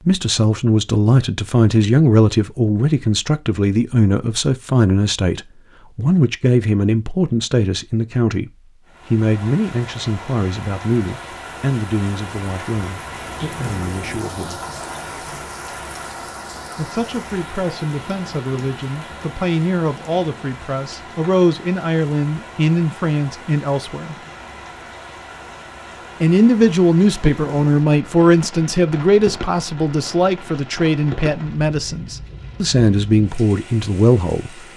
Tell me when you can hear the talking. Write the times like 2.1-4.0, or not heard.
0.1-14.6, 16.8-24.1, 26.2-34.6.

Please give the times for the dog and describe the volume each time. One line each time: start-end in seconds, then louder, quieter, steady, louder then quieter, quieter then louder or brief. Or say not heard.
not heard.